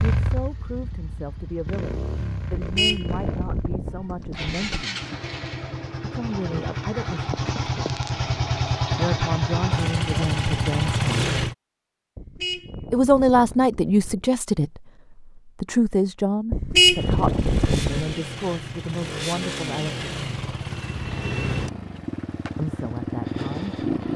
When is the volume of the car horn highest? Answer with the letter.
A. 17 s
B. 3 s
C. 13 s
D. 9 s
A.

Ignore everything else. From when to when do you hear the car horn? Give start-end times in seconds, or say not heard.
2.5-4.8, 12.2-14.3, 16.5-18.1.